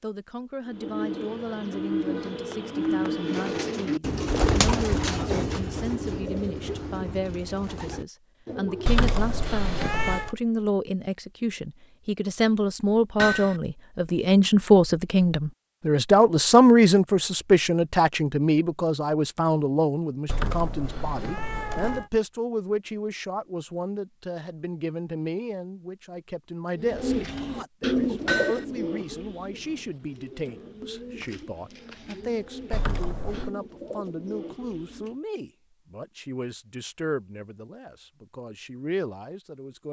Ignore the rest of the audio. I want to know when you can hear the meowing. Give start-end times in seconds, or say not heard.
8.8-10.3, 20.2-22.1, 32.7-33.5.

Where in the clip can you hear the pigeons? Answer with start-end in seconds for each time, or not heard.
0.7-9.1, 26.8-35.2.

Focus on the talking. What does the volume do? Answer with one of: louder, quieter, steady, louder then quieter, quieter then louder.
louder then quieter.